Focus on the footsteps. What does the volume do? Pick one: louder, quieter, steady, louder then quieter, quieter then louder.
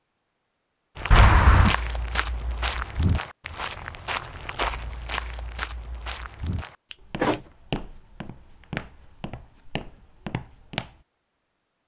quieter.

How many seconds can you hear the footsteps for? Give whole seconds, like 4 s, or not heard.
10 s.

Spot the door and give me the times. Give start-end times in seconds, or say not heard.
1.1-1.8, 6.9-7.5.